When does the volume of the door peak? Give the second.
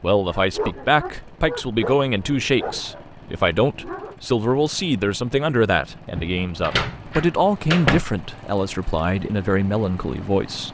8 s.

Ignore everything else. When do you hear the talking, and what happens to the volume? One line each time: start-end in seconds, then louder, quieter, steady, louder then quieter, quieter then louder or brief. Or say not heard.
0.0-10.7 steady.